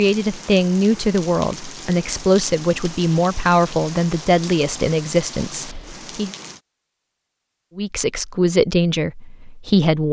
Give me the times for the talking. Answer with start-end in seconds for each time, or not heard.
0.0-6.3, 7.8-10.0.